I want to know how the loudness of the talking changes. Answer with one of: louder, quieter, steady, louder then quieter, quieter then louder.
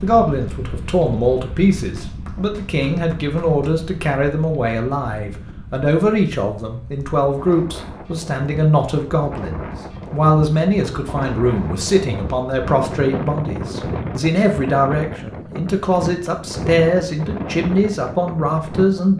steady.